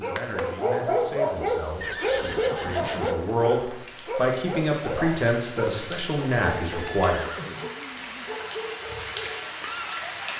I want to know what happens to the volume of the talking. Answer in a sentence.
The volume of the talking goes up.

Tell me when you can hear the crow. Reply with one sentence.
The crow can't be heard in this clip.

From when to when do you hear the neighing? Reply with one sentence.
You can hear the neighing from 1.8 to 3.1 s and from 6.7 to 8.4 s.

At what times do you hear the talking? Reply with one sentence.
You can hear the talking from 0.0 to 7.2 s.